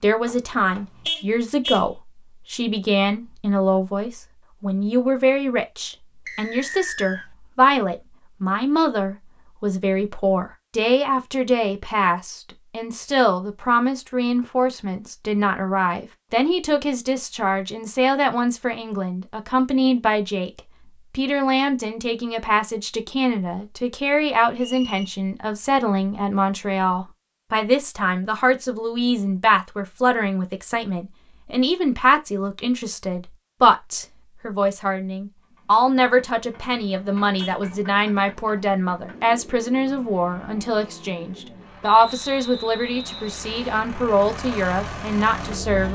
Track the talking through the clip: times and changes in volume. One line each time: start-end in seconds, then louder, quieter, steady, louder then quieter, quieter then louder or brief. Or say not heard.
0.0-45.9 steady.